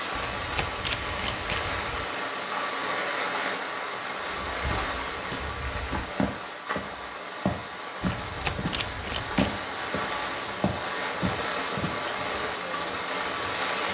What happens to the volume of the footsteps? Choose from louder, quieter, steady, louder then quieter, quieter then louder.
louder.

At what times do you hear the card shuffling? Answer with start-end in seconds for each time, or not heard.
0.1-2.0, 8.0-9.6.